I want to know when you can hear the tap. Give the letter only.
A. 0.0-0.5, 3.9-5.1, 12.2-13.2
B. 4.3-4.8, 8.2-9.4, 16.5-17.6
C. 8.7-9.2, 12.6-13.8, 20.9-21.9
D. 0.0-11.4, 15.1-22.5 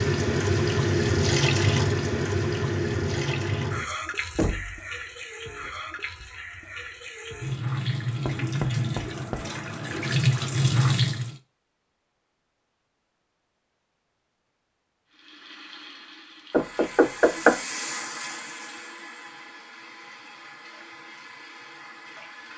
D.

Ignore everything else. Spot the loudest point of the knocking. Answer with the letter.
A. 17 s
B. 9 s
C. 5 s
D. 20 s
A.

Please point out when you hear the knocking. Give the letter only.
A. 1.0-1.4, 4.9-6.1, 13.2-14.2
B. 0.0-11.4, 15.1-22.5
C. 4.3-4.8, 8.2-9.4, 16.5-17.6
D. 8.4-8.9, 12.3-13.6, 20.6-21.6
C.